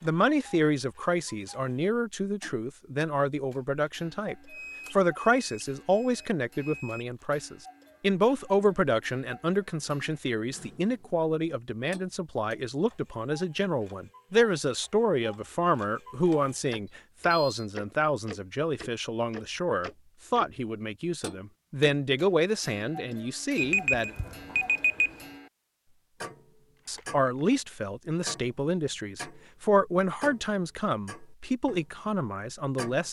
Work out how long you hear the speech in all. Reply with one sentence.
The speech can be heard for 30 seconds in total.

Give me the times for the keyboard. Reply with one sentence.
You can't hear the keyboard here.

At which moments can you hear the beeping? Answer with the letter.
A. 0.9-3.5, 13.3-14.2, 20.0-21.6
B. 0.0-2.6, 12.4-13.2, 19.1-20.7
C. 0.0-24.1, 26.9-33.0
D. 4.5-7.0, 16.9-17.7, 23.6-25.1
D.